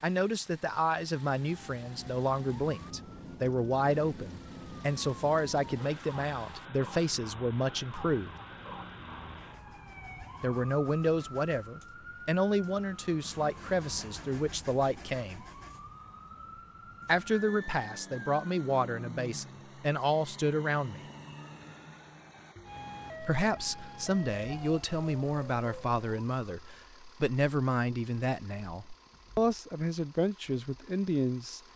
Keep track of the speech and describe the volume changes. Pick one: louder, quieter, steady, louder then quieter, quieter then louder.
steady.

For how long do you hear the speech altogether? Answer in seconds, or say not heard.
26 s.